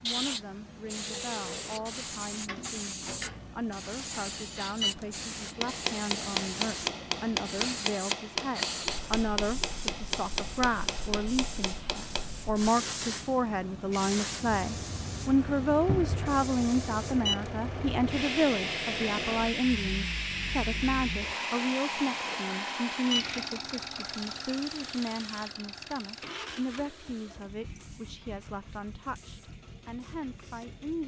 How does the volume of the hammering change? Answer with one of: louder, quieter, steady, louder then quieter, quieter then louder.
quieter.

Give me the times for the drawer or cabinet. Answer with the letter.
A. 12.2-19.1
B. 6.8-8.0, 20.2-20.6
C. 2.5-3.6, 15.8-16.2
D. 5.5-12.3
C.